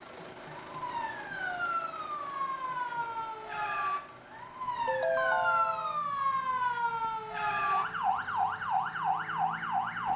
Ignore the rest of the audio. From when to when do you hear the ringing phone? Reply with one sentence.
You can hear the ringing phone from 4.8 to 6.0 s.